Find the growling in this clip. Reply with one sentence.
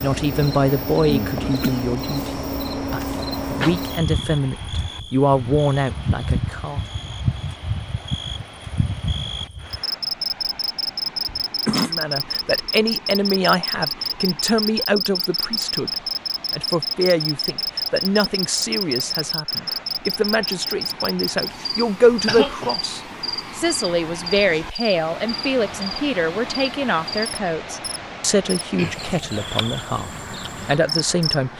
You can't hear the growling here.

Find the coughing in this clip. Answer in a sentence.
The coughing can be heard from 1.4 to 1.8 s, from 11.2 to 11.9 s and from 22.2 to 22.8 s.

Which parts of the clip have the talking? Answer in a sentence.
The talking can be heard from 0.0 to 6.8 s and from 11.8 to 31.5 s.